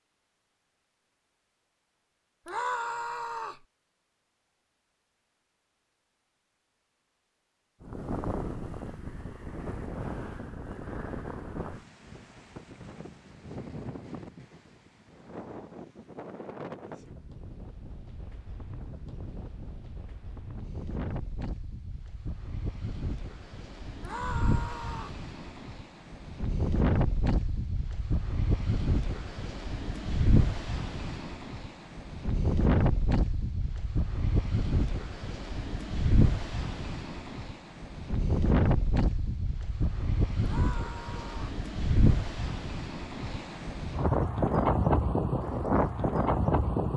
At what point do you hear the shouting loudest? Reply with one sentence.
The loudest moment of the shouting is at 3 seconds.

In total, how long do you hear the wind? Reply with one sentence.
You can hear the wind for 39 seconds altogether.